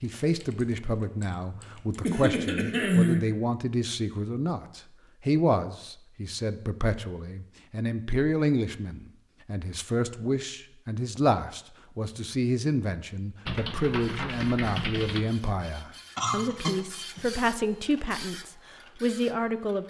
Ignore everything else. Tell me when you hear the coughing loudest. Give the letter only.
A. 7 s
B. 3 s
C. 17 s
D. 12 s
B.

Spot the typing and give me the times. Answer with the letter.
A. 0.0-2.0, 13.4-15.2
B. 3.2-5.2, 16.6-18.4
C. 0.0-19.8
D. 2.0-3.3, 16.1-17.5
A.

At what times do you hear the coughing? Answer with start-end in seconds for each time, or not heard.
2.0-3.3, 16.1-17.5.